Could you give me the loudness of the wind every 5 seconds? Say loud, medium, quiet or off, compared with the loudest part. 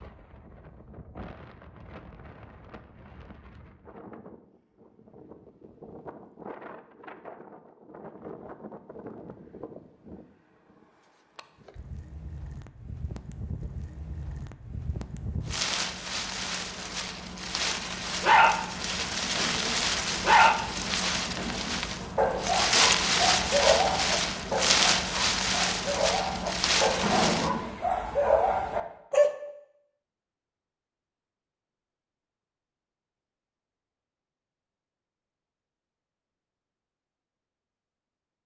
quiet, quiet, quiet, medium, loud, loud, off, off.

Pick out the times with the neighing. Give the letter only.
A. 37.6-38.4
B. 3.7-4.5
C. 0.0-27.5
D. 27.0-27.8
D.